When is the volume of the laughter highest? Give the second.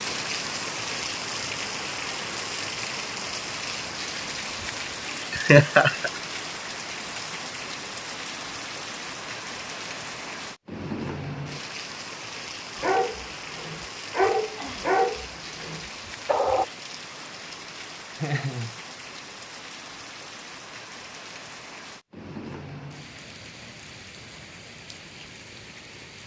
6 s.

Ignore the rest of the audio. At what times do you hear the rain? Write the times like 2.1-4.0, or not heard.
0.0-26.2.